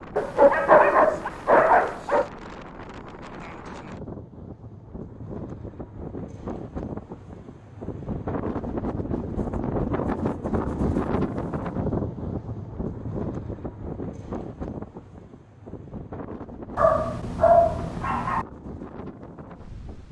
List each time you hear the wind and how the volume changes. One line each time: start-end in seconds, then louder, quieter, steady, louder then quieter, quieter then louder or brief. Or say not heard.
0.0-20.0 louder then quieter.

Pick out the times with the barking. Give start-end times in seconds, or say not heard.
0.1-2.2, 16.8-18.4.